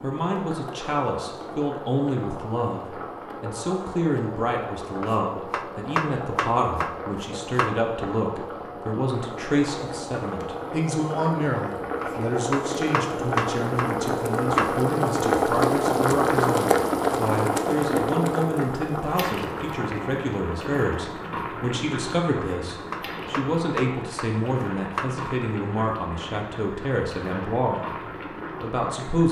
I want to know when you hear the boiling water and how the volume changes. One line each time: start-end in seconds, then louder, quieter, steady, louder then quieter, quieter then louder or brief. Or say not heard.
0.0-29.2 louder then quieter.